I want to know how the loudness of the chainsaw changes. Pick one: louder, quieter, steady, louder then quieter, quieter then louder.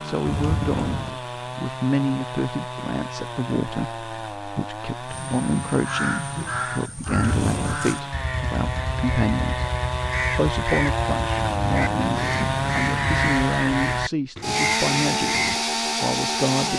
louder.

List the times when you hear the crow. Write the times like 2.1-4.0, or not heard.
5.0-15.6.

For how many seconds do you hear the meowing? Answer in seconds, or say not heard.
4 s.